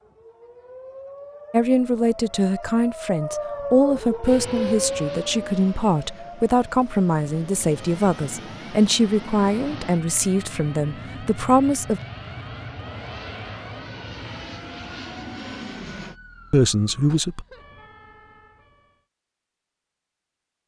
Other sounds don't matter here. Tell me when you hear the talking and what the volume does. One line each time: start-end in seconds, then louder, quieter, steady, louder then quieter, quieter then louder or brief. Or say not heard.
1.5-12.0 steady
16.5-17.4 brief.